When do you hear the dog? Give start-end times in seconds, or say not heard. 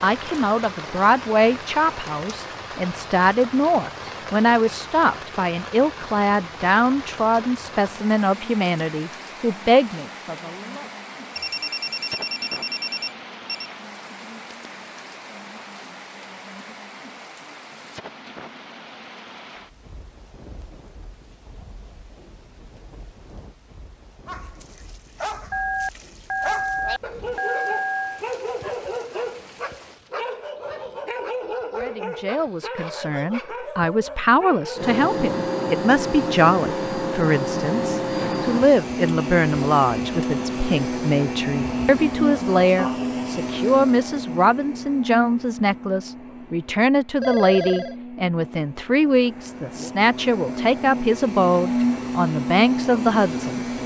24.2-35.0.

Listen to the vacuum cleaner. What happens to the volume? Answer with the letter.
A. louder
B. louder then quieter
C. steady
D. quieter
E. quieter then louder
E.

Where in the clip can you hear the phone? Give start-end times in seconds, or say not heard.
11.3-13.7, 25.5-28.2, 47.2-48.0.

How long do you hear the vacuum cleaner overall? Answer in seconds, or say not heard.
19 s.